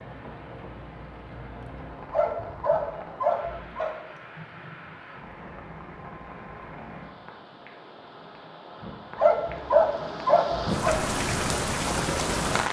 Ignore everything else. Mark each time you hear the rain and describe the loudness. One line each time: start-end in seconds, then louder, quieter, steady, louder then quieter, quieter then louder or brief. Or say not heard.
0.0-12.6 louder.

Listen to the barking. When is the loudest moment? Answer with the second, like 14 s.
10 s.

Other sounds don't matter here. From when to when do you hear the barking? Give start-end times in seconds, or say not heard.
2.1-3.9, 9.2-11.0.